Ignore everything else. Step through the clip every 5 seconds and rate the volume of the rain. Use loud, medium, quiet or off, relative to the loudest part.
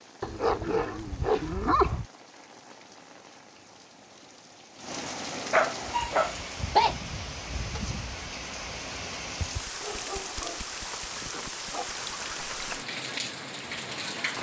quiet, loud, loud.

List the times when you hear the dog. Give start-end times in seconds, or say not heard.
0.2-2.0, 5.5-7.0, 9.7-12.0.